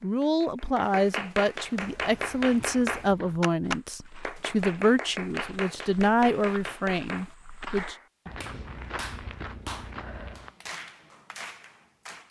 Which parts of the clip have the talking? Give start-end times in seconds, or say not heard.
0.0-8.0.